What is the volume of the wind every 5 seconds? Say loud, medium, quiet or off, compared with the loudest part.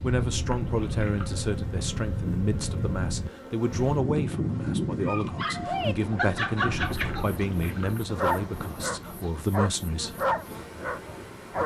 loud, medium, quiet.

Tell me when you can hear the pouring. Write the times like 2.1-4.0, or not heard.
0.1-1.3, 6.7-8.0.